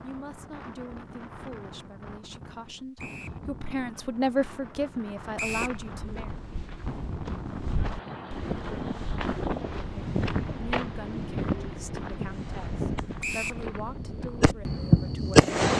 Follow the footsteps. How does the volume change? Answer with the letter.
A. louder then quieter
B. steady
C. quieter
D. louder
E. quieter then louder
A.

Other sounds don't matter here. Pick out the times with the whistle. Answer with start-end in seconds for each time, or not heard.
3.0-3.4, 5.3-5.8, 13.2-13.7.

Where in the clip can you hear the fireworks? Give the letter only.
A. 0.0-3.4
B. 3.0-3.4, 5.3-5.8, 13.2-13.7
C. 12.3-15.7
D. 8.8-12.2
C.